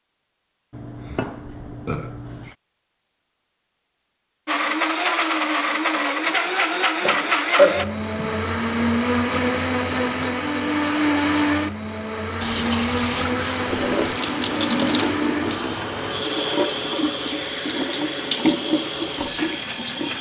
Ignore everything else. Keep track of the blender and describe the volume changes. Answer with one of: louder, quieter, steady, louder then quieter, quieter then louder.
quieter.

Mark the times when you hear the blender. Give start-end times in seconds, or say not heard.
4.5-20.1.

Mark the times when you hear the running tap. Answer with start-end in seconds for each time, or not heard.
12.3-20.1.